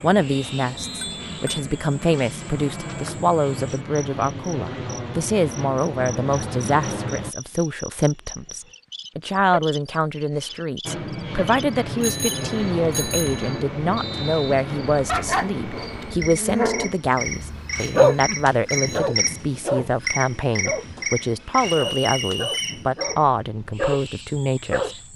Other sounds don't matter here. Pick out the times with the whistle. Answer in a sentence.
The whistle can be heard from 0.3 to 1.1 s, from 13.9 to 14.6 s and from 21.6 to 22.9 s.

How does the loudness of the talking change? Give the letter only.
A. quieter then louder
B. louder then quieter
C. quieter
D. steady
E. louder
D.